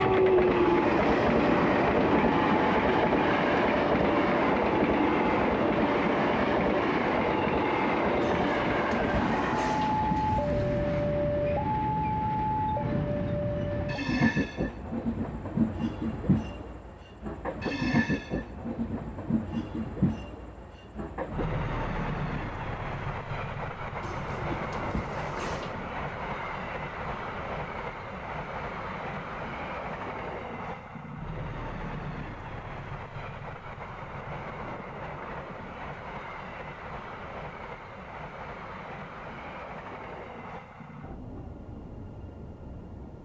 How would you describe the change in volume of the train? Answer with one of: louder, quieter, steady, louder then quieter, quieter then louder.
quieter.